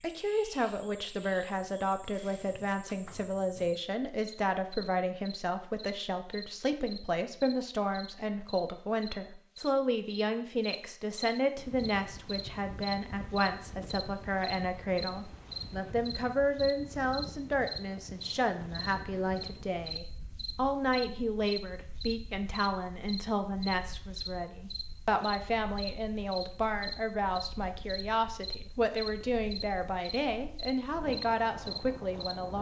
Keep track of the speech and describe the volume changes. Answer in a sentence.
The volume of the speech stays about the same.